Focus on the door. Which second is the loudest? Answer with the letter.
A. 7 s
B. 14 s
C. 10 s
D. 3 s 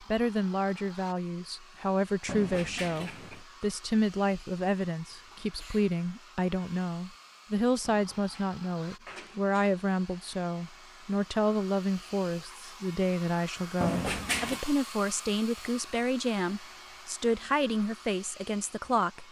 B.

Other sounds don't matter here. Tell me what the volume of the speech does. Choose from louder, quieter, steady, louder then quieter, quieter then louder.
steady.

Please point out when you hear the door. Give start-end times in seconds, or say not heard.
2.2-3.5, 7.8-9.8, 13.8-14.7.